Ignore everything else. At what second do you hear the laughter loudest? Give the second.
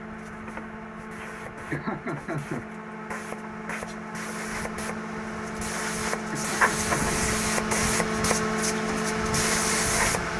2 s.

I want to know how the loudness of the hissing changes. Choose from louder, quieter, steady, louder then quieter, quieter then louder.
louder.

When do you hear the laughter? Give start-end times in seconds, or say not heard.
1.7-2.6, 6.3-7.2.